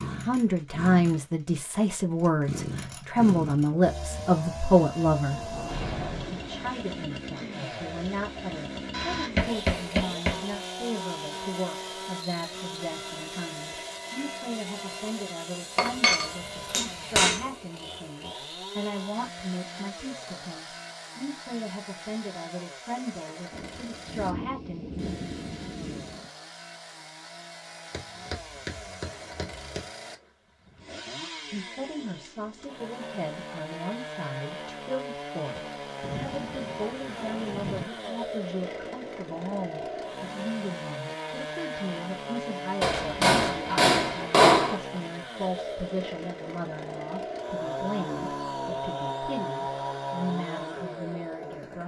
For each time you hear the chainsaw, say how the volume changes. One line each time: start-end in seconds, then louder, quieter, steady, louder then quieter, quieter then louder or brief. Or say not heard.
0.0-51.8 quieter then louder.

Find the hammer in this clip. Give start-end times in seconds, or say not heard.
8.9-10.6, 15.8-17.4, 27.9-29.9, 42.8-44.8.